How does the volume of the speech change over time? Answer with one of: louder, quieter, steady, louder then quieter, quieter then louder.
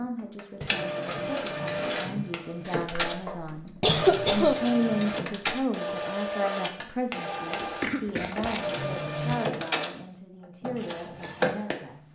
louder then quieter.